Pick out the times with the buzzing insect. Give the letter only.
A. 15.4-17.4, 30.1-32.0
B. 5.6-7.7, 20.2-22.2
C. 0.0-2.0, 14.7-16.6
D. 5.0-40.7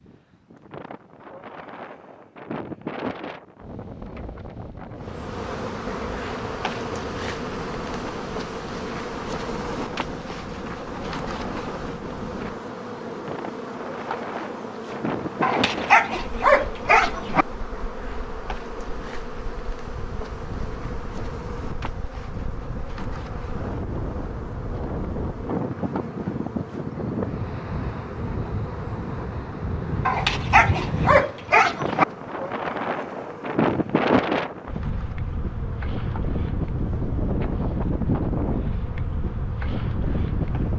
D.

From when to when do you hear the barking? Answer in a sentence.
The barking can be heard from 15.4 to 17.4 s and from 30.1 to 32.0 s.